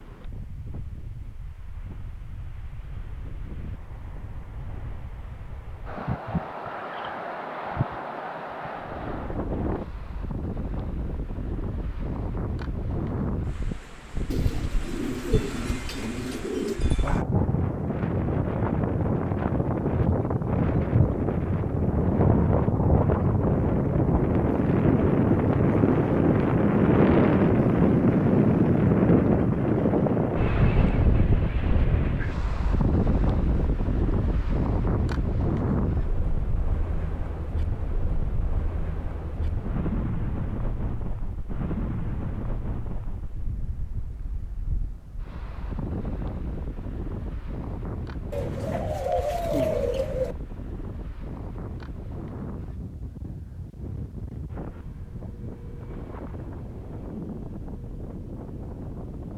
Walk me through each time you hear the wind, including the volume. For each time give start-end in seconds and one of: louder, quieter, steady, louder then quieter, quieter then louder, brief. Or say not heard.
0.0-59.3 louder then quieter.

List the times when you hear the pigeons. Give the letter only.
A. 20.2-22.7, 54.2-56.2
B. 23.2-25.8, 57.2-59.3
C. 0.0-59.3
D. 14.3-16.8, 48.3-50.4
D.